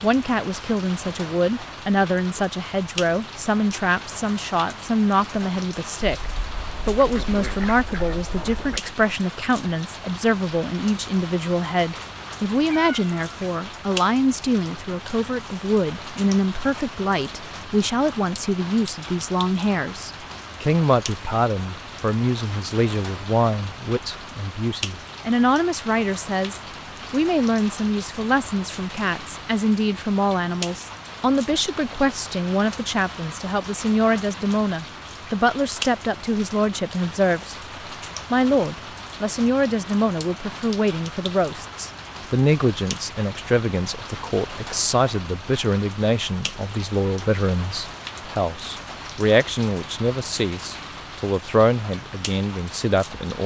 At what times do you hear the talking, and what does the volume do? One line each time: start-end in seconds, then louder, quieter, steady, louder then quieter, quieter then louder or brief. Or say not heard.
0.0-37.5 steady
38.3-53.4 steady.